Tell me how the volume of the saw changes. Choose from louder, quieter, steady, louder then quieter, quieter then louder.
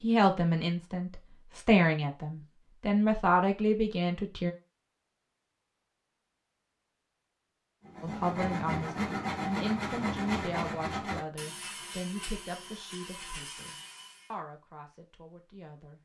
quieter.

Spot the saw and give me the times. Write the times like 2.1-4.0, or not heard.
7.8-14.3.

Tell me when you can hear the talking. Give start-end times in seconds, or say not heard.
0.0-4.5, 8.0-16.0.